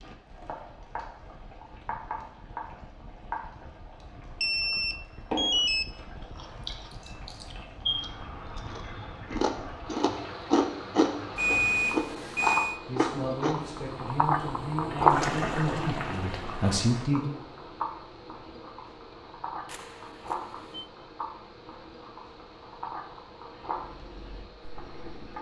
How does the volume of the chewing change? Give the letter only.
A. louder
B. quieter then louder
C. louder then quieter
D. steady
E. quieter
A.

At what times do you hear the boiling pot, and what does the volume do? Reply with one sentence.
You can hear the boiling pot from 0.0 to 25.3 s, getting louder then quieter.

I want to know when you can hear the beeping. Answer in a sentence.
You can hear the beeping from 4.4 to 5.9 s, from 11.3 to 12.8 s and from 19.6 to 20.9 s.